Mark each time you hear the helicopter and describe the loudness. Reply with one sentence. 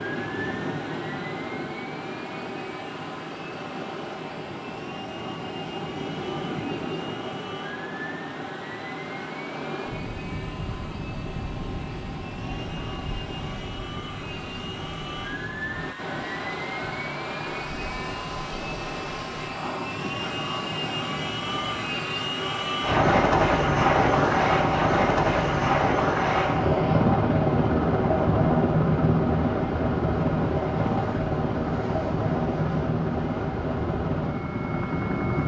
You can hear the helicopter from 0.0 to 35.4 s, getting louder.